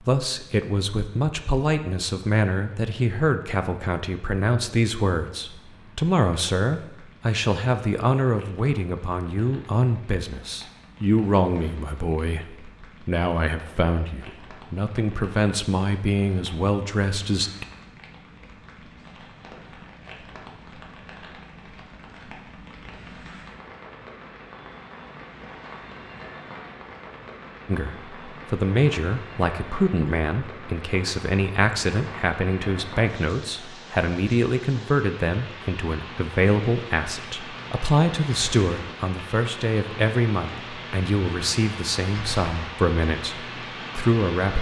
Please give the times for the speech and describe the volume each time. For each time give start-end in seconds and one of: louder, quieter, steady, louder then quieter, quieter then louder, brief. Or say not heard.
0.1-17.6 steady
27.6-44.5 steady.